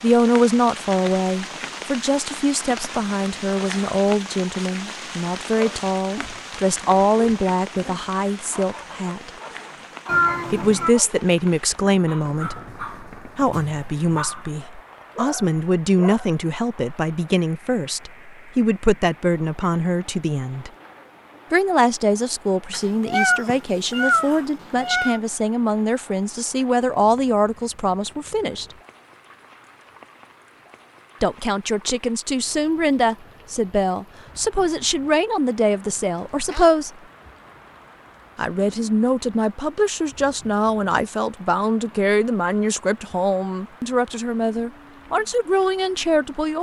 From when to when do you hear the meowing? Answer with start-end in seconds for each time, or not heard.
10.1-10.9, 22.7-25.2, 36.0-36.7.